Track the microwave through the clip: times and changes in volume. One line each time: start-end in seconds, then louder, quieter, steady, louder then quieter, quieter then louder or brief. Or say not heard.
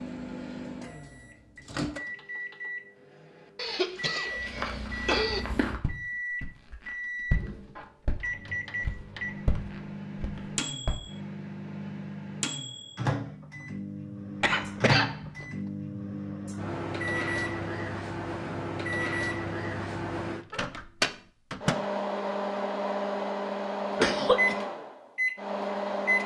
0.0-26.2 louder.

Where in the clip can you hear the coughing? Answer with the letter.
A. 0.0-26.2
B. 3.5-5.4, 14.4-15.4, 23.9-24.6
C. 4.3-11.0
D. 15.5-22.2
B.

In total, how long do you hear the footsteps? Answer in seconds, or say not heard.
7 s.